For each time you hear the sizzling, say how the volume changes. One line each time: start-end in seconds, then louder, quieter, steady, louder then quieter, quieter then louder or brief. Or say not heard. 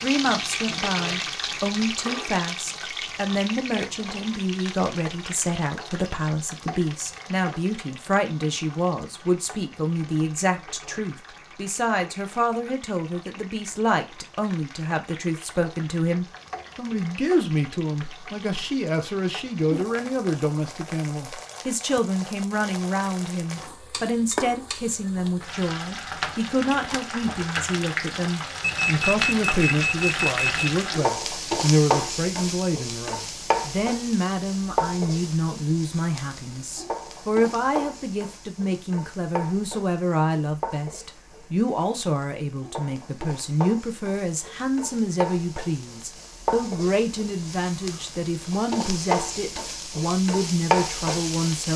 0.0-51.7 quieter then louder.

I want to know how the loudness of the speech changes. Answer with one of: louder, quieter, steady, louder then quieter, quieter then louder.
steady.